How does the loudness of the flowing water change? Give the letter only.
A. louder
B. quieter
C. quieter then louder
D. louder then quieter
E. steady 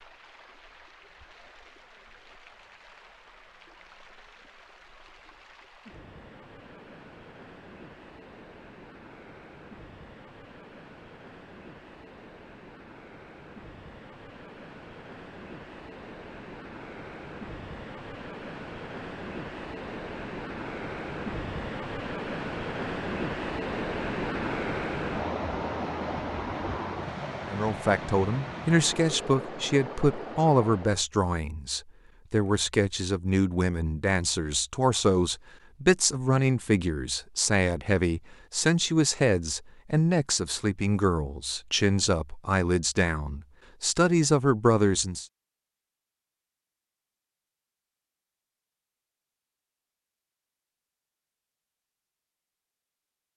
A.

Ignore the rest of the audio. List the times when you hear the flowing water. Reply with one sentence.
You can hear the flowing water from 0.0 to 31.1 s.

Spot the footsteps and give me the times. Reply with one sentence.
The footsteps can't be heard in this clip.